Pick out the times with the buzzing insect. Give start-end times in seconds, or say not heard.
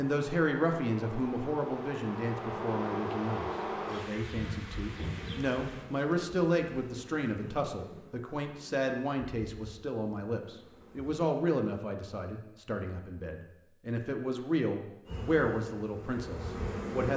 0.0-11.2, 15.1-17.1.